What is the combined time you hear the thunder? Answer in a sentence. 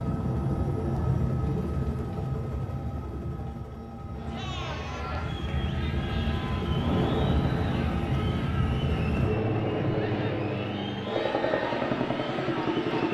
You can hear the thunder for 3 seconds altogether.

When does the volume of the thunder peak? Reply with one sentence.
The loudest moment of the thunder is at 7 seconds.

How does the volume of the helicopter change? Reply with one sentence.
The volume of the helicopter goes down, then up.